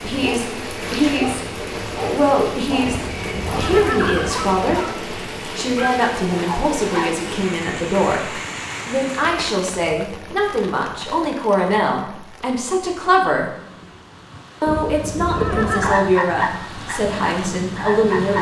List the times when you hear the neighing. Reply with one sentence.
The neighing can be heard from 2.8 to 4.8 s and from 14.7 to 16.0 s.